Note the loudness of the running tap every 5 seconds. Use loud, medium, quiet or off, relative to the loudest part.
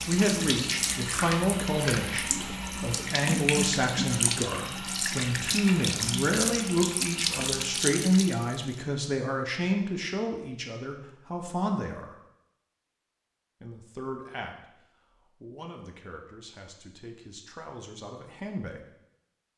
loud, loud, off, off.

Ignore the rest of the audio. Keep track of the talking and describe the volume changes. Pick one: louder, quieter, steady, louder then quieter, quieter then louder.
quieter.